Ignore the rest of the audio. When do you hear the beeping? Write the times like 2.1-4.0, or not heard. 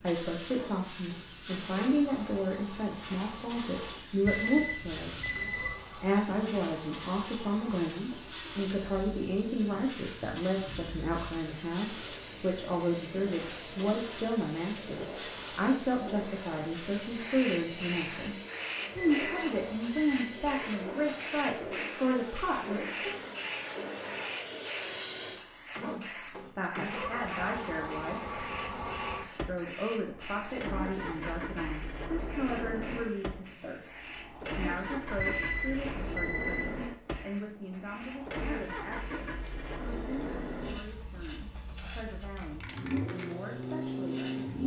4.2-5.8, 18.9-20.4, 35.1-36.7.